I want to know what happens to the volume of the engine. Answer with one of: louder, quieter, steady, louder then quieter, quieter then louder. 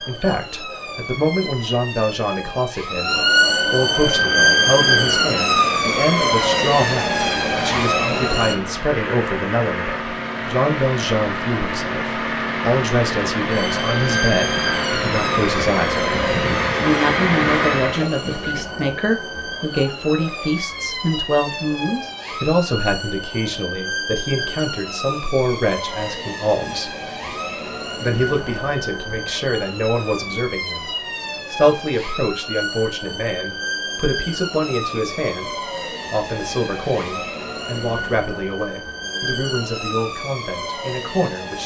louder.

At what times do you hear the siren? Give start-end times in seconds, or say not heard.
0.0-8.6, 13.5-41.6.